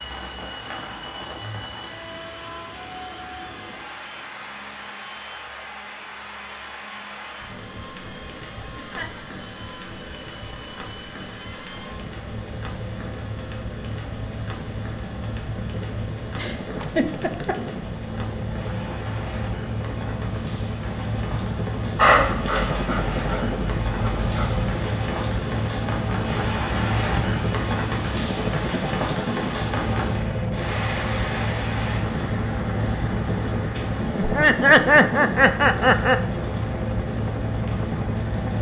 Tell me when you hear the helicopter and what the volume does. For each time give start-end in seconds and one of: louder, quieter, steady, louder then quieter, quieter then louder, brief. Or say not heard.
0.0-38.5 louder.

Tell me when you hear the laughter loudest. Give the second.
35 s.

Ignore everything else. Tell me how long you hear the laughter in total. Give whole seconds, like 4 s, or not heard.
4 s.